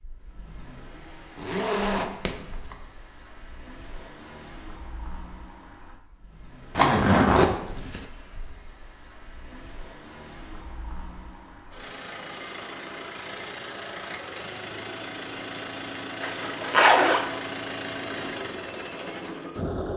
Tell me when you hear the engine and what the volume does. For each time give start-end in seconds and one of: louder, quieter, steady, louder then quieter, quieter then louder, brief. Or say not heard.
0.0-19.9 louder.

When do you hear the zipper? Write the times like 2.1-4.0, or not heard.
1.4-2.8, 6.8-8.1, 16.2-17.2.